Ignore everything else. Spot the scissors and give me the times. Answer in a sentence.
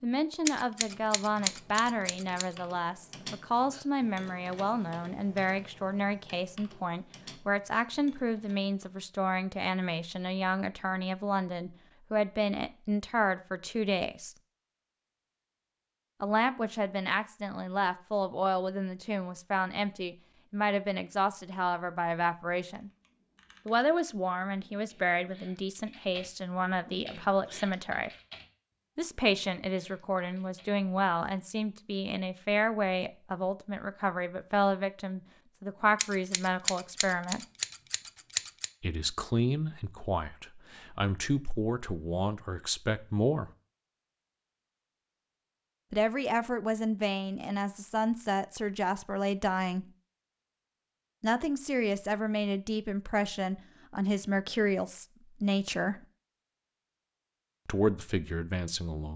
The scissors can be heard from 0.5 to 2.5 s and from 36.0 to 38.7 s.